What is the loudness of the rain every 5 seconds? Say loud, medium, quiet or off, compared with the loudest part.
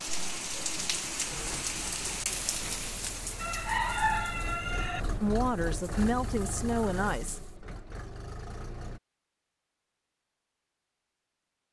loud, quiet, off.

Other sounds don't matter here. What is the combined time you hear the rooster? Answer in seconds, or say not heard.
2 s.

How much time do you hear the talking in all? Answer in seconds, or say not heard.
2 s.